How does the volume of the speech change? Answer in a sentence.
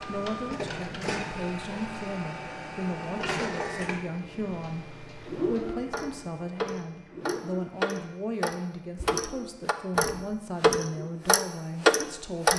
The volume of the speech stays about the same.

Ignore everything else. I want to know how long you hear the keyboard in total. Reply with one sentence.
The keyboard can't be heard in this clip.